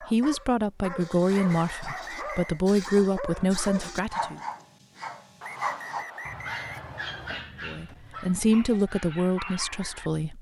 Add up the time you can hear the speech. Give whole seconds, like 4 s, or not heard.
7 s.